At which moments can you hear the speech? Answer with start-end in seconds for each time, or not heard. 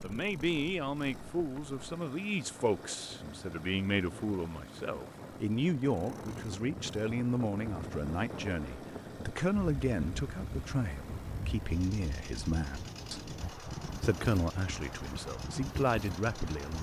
0.0-16.7.